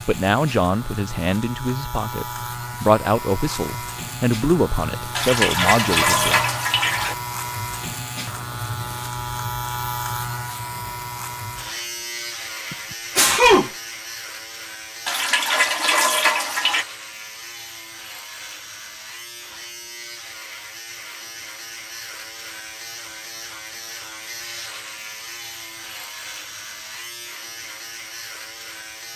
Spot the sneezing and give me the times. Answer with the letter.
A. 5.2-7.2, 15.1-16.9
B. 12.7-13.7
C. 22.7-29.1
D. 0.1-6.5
B.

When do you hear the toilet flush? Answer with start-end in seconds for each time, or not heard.
5.2-7.2, 15.1-16.9.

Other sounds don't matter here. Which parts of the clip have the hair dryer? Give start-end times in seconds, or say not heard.
not heard.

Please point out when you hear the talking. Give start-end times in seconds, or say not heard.
0.1-6.5.